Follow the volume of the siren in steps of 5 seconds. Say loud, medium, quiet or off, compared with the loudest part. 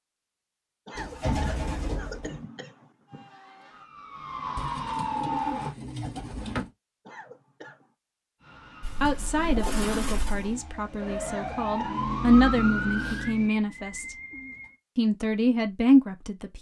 loud, loud, loud, off.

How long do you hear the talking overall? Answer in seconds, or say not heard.
7 s.